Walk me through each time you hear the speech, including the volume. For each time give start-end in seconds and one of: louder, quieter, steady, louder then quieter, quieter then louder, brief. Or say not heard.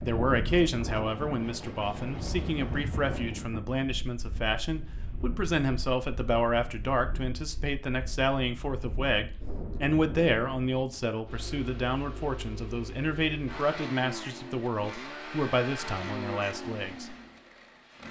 0.1-17.1 steady.